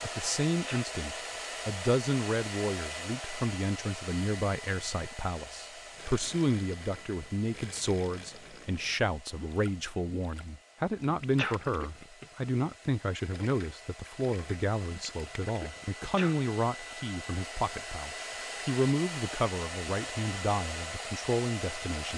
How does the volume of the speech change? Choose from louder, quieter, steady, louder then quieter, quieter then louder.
steady.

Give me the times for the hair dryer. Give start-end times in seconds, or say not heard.
0.0-22.1.